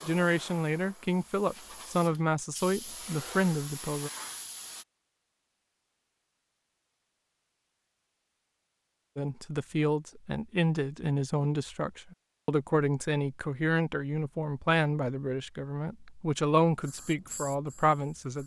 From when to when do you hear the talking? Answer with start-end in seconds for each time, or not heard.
0.1-4.1, 9.2-18.4.